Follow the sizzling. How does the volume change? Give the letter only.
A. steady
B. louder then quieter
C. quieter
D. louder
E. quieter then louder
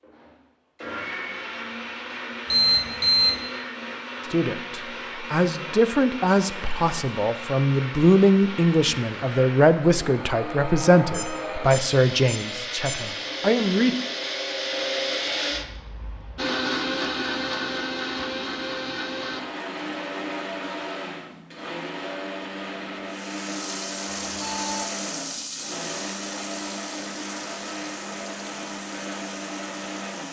C.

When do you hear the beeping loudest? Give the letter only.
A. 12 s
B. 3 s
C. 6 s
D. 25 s
B.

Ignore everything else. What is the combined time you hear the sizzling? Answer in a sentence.
The sizzling can be heard for 7 seconds in total.